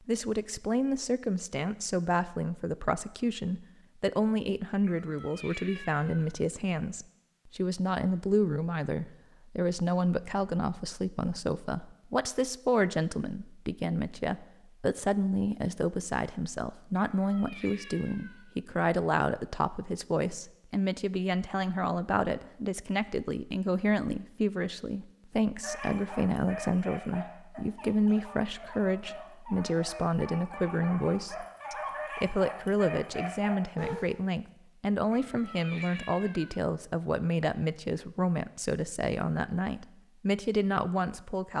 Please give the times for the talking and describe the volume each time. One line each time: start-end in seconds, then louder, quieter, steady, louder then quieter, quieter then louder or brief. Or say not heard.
0.1-41.5 steady.